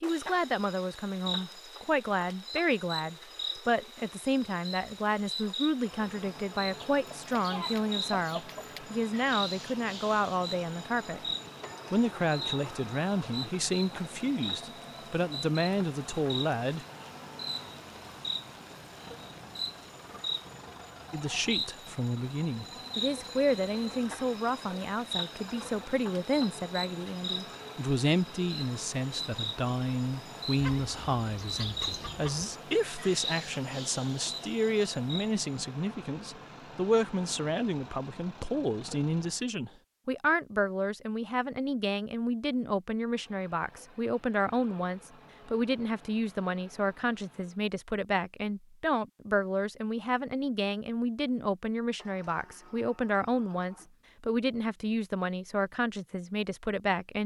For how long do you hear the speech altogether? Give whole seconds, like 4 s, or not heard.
52 s.